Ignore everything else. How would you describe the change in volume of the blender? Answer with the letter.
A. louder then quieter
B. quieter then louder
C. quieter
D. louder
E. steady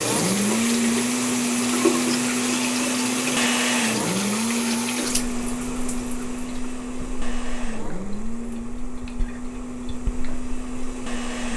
C.